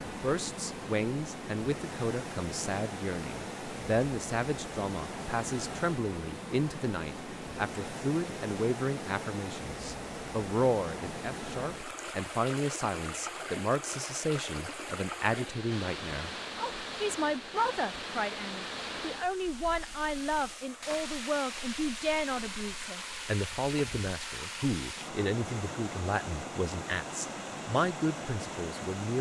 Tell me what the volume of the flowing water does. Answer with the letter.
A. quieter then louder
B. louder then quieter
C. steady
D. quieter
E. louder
C.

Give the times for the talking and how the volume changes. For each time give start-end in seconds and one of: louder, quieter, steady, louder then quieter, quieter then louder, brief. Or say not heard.
0.1-29.1 steady.